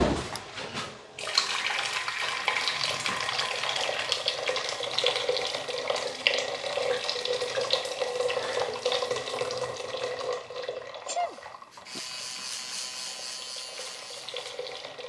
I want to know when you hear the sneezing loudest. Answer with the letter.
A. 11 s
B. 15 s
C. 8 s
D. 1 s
A.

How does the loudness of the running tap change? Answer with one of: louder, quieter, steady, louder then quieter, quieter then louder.
quieter.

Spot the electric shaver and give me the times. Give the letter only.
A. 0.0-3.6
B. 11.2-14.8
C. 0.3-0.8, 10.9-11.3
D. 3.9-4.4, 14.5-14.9
B.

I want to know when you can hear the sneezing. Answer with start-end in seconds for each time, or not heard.
0.3-0.8, 10.9-11.3.